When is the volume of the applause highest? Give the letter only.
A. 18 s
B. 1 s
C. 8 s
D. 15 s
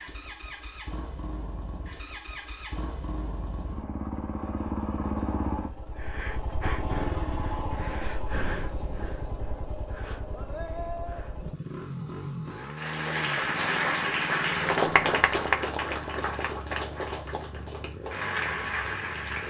D.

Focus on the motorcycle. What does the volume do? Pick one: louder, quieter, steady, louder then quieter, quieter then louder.
louder then quieter.